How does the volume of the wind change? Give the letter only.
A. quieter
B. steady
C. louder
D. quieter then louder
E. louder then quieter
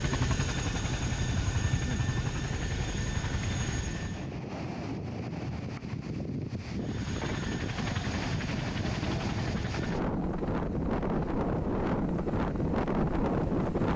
C.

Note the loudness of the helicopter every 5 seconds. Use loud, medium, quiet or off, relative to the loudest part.
loud, medium, medium.